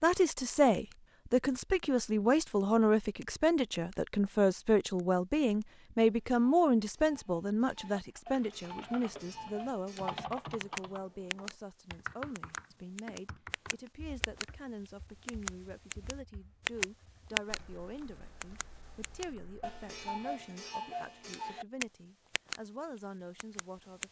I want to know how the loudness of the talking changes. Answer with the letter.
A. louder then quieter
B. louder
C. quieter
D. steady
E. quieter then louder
C.